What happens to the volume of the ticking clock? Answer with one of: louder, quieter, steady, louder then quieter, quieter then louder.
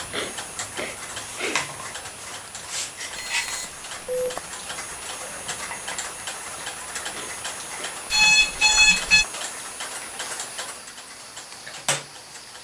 steady.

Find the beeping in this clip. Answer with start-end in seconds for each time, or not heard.
3.1-4.4, 8.1-9.2.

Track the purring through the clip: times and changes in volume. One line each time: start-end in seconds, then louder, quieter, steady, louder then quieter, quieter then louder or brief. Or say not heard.
not heard.